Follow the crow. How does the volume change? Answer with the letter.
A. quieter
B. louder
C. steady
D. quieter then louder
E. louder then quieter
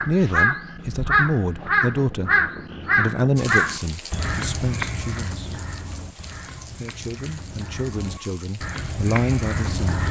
D.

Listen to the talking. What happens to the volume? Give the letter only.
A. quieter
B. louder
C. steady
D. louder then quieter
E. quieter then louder
E.